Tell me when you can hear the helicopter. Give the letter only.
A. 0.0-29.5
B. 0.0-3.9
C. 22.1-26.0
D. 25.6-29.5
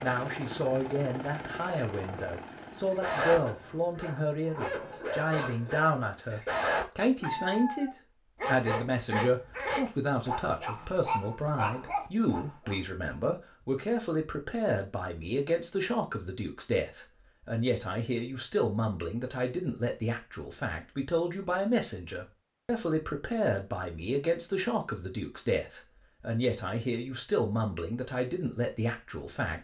B.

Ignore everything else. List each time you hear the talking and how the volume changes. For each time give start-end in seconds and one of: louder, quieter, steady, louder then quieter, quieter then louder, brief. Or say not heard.
0.0-29.5 steady.